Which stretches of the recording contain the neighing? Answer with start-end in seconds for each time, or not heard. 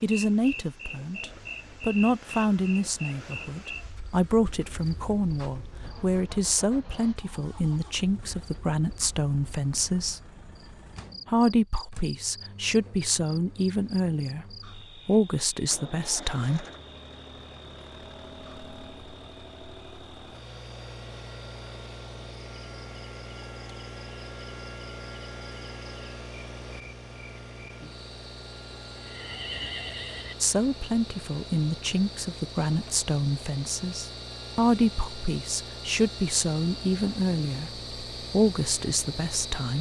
28.9-30.4.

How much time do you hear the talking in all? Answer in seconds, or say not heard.
25 s.